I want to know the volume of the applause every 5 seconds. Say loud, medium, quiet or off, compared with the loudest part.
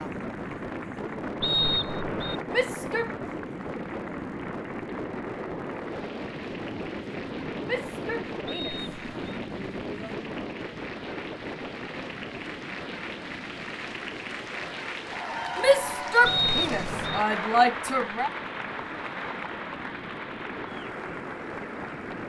medium, medium, medium, loud, medium.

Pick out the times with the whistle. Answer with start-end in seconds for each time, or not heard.
1.4-2.4, 8.4-9.2, 16.2-17.2.